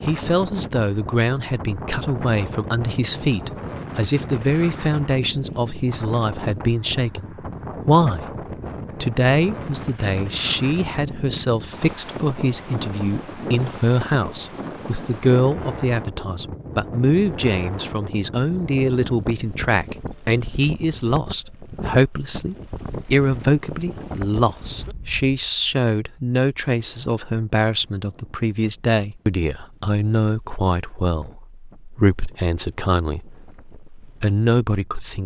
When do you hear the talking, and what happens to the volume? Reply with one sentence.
You can hear the talking from 0.0 to 8.3 s, at a steady volume; and from 9.0 to 35.2 s, at a steady volume.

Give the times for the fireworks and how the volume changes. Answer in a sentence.
You can't hear the fireworks here.